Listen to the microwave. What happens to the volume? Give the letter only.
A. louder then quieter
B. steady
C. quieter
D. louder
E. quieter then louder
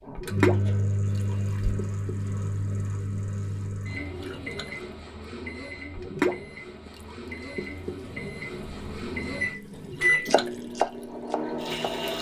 E.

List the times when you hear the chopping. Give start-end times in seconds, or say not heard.
10.3-11.9.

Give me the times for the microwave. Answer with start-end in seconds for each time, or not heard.
0.1-12.1.